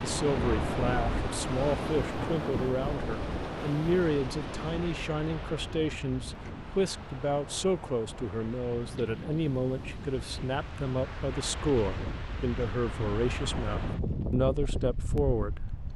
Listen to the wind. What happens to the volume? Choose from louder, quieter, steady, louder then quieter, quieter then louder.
quieter then louder.